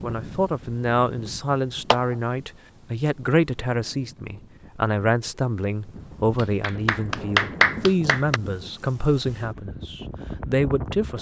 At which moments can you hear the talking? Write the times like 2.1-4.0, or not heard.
0.0-11.1.